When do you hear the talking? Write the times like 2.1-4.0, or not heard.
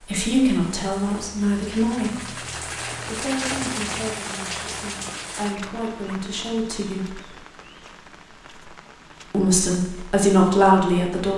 0.0-7.2, 9.3-11.3.